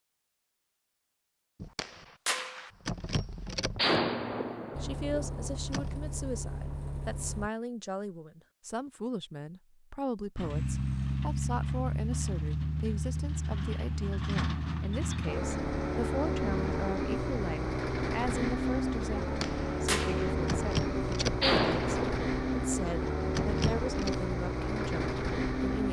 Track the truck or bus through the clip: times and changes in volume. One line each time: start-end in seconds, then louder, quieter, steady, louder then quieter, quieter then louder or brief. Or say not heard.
4.7-7.5 brief
10.3-25.8 steady.